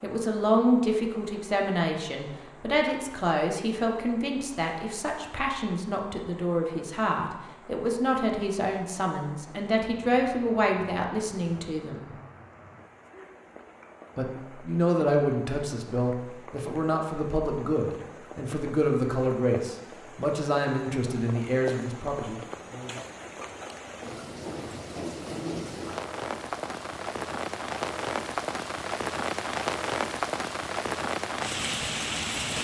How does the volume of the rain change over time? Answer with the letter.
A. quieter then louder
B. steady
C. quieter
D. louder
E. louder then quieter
D.